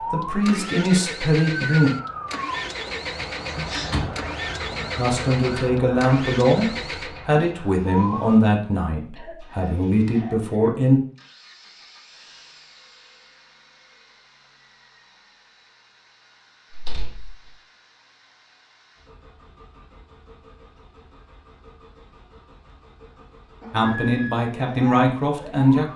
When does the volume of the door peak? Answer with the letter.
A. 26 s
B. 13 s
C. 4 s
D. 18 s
C.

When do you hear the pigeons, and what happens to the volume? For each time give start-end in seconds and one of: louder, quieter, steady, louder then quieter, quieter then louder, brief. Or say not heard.
not heard.